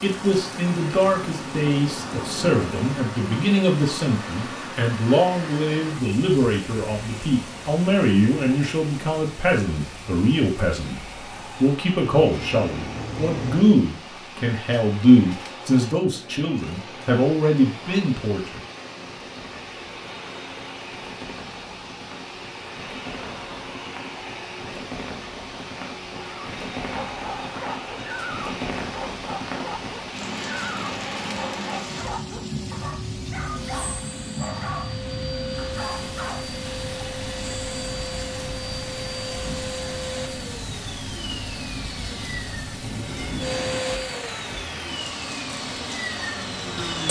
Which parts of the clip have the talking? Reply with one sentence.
You can hear the talking from 0.0 to 11.0 s and from 11.6 to 18.6 s.